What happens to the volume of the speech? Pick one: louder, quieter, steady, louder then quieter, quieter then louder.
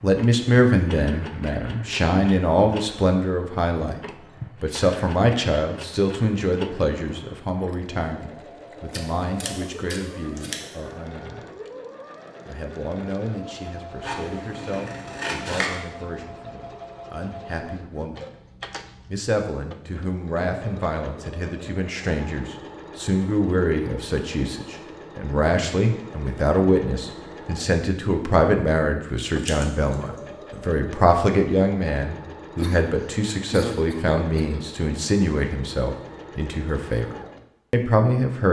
quieter then louder.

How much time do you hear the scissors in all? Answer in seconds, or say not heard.
4 s.